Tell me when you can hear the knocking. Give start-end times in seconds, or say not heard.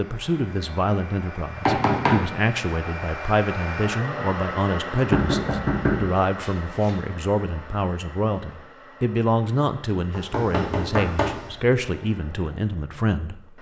1.6-2.2, 5.1-6.9, 10.1-11.6.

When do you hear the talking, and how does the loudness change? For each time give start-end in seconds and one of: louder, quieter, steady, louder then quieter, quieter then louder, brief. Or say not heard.
0.0-13.5 steady.